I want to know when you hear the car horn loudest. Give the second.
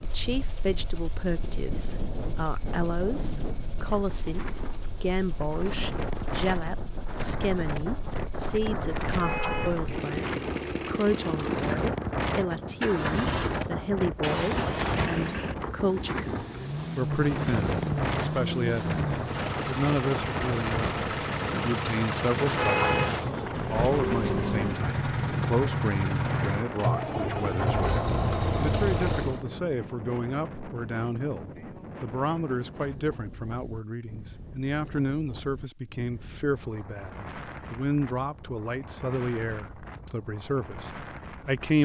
23 s.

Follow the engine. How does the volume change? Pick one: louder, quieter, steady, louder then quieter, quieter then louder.
louder.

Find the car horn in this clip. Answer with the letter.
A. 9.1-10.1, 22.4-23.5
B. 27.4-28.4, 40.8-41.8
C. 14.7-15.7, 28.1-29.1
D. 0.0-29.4
A.